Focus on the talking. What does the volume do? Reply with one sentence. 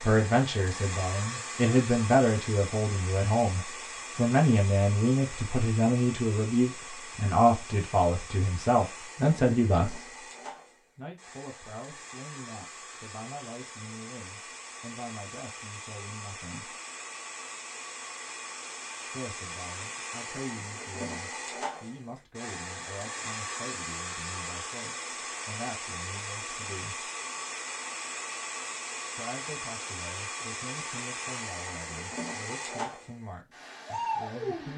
The loudness of the talking goes down.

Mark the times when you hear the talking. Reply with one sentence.
The talking can be heard from 0.0 to 10.1 s, from 10.9 to 16.8 s, from 19.1 to 27.1 s and from 29.1 to 34.7 s.